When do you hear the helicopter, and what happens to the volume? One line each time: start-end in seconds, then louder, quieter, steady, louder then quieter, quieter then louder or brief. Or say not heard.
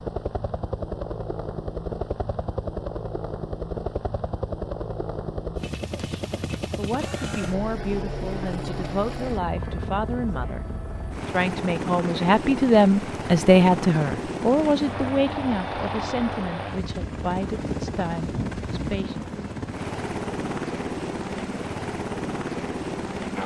0.0-23.4 steady.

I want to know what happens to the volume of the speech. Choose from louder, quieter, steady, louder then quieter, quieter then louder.
louder then quieter.